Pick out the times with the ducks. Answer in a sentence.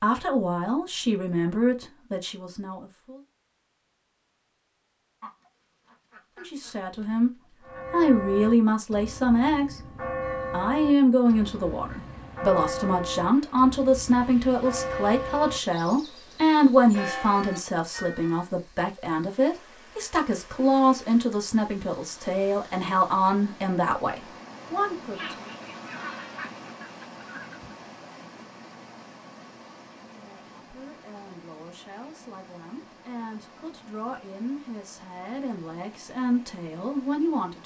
You can hear the ducks from 5.2 to 7.9 s and from 25.1 to 27.8 s.